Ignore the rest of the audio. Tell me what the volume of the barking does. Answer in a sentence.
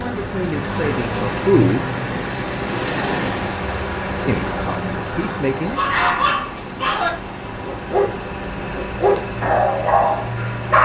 The volume of the barking stays about the same.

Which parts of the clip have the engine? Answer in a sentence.
You can hear the engine from 0.0 to 10.8 s.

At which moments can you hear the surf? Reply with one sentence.
The surf can be heard from 0.0 to 10.8 s.